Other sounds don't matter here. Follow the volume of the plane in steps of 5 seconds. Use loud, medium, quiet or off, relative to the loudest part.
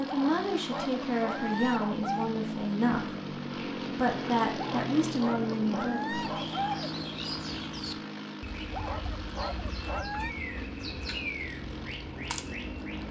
loud, loud, medium.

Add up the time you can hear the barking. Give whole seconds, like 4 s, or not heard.
6 s.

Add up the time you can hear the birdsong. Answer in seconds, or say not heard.
7 s.